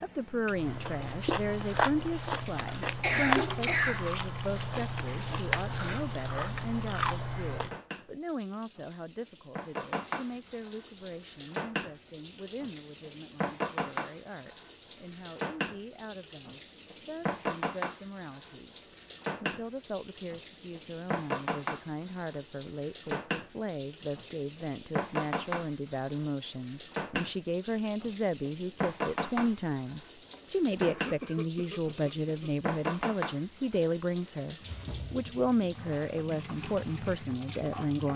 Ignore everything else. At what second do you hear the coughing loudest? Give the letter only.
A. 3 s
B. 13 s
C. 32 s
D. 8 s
A.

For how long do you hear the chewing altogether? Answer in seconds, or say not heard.
7 s.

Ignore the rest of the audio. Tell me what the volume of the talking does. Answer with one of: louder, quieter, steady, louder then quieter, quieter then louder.
quieter then louder.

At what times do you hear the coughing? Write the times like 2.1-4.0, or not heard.
2.8-4.0, 30.3-32.5.